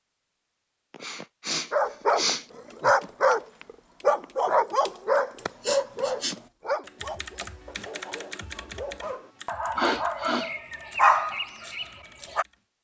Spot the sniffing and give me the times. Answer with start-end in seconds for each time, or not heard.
0.9-2.5, 5.6-6.3, 9.8-10.5.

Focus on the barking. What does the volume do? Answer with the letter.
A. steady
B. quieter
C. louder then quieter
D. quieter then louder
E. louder
D.